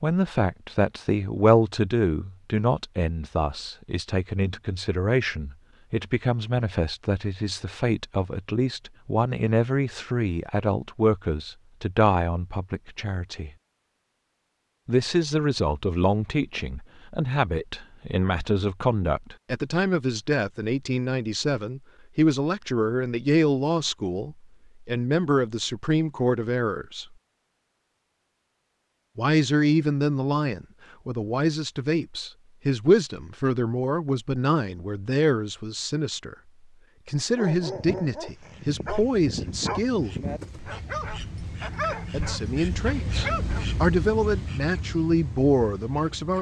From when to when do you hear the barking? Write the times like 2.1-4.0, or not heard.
37.4-43.8.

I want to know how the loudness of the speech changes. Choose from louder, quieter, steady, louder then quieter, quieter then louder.
steady.